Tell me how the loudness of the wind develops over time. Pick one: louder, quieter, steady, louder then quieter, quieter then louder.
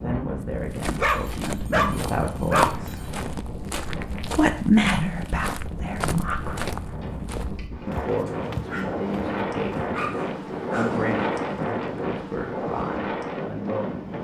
louder.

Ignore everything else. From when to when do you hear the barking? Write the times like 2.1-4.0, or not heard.
0.9-2.9, 8.2-8.9, 9.9-11.0.